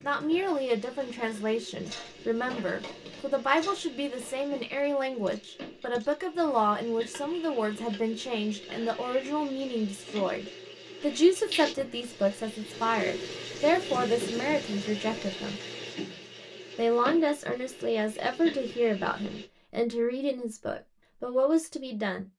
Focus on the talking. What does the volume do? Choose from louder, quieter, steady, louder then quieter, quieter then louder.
steady.